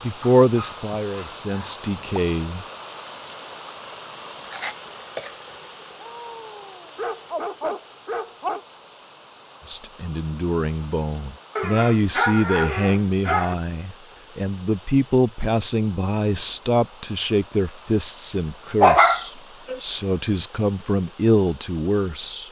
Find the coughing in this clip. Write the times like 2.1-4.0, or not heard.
4.4-5.5.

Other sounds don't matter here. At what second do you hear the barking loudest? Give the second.
19 s.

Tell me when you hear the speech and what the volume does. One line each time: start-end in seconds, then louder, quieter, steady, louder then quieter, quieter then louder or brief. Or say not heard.
0.0-2.6 brief
9.7-22.4 steady.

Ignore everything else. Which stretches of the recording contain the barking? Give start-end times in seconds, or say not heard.
0.4-2.2, 6.0-8.7, 11.6-13.6, 18.8-19.8.